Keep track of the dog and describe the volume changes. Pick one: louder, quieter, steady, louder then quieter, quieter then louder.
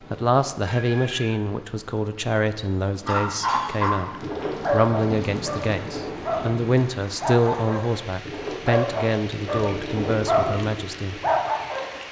quieter then louder.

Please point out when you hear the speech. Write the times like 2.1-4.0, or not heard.
0.1-11.2.